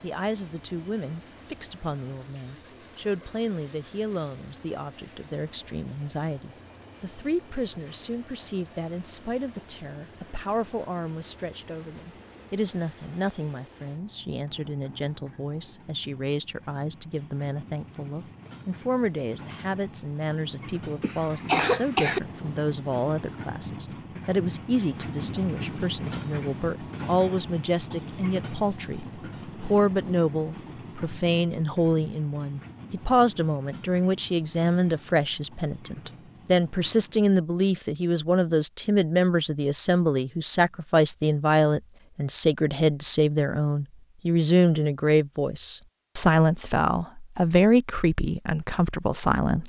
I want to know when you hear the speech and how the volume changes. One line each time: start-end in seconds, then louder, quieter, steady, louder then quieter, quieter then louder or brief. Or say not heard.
0.0-49.6 louder.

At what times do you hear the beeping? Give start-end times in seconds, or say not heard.
not heard.